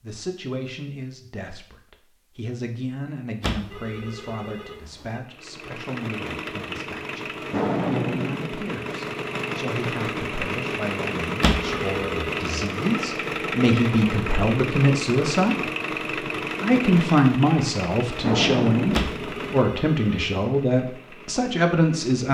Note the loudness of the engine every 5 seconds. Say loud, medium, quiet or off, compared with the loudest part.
off, loud, loud, loud, quiet.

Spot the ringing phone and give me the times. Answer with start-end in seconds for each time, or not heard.
3.4-5.2, 11.4-12.4, 18.9-20.4.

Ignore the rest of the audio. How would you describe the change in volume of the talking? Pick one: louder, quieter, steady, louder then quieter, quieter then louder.
louder.